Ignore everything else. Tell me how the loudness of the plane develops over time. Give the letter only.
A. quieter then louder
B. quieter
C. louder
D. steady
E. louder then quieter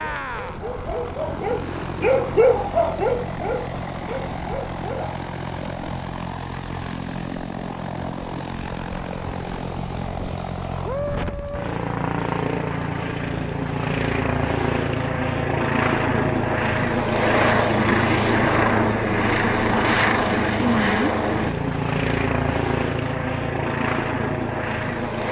C.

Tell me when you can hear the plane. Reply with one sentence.
The plane can be heard from 0.0 to 25.2 s.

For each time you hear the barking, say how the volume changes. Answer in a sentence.
The barking can be heard from 0.0 to 5.2 s, getting louder then quieter.